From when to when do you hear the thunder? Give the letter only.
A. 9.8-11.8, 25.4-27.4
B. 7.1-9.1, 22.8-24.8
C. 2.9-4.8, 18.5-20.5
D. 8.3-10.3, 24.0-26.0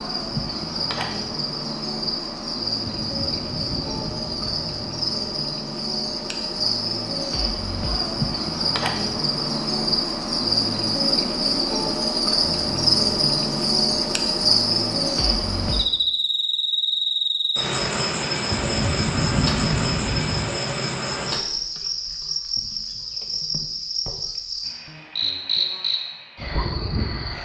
C.